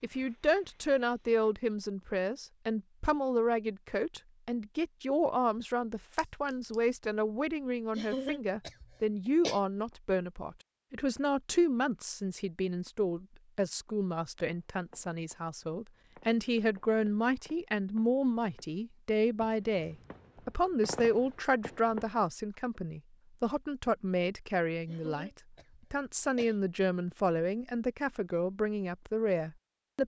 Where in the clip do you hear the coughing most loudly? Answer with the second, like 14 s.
8 s.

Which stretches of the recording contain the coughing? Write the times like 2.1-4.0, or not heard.
8.0-9.6, 24.9-26.6.